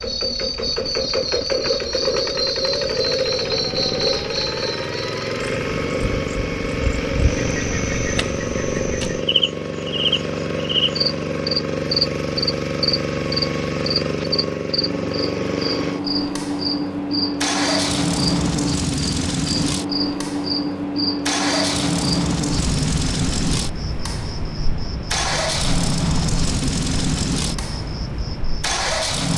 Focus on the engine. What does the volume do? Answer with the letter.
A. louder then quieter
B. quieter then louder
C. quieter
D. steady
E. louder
D.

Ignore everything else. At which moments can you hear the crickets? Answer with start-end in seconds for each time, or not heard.
0.0-29.3.